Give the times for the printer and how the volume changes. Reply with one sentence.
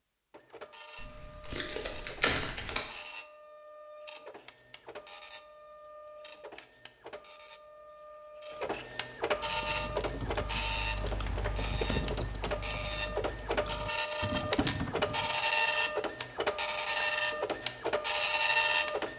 The printer can be heard from 0.3 to 19.1 s, getting louder.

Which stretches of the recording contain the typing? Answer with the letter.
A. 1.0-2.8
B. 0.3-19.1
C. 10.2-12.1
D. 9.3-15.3
D.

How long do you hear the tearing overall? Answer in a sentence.
The tearing can be heard for 2 seconds in total.